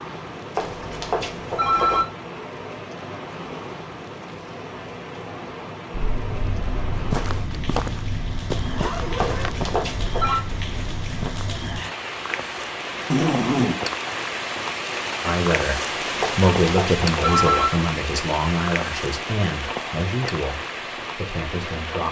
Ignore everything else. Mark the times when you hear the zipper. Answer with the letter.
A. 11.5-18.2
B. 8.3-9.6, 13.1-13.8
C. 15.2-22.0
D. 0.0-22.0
B.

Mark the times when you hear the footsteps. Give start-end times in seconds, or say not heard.
5.9-11.7.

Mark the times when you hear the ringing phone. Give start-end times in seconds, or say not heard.
0.6-2.0, 9.2-10.4, 16.2-17.7.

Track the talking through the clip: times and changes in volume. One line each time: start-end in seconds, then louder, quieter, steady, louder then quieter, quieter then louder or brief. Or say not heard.
15.2-22.0 quieter.